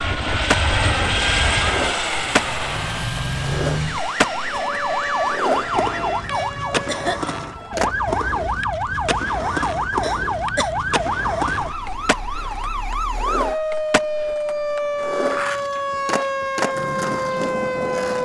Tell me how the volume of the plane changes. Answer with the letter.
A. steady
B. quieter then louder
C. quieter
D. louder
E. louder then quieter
C.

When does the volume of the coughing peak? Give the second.
7 s.